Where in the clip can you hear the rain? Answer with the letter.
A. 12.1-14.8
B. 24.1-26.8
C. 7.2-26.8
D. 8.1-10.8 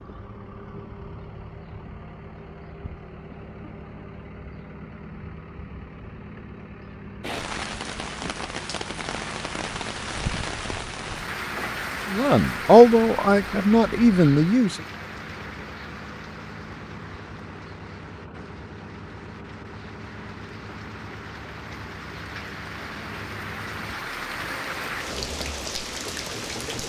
C.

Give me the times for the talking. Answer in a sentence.
You can hear the talking from 12.1 to 14.8 s.